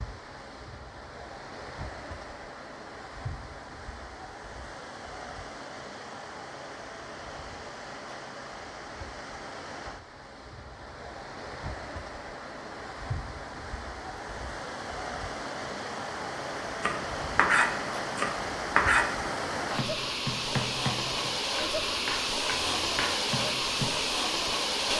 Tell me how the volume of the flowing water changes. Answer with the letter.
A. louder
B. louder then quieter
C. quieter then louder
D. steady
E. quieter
A.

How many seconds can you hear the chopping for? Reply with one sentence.
You can hear the chopping for 7 seconds altogether.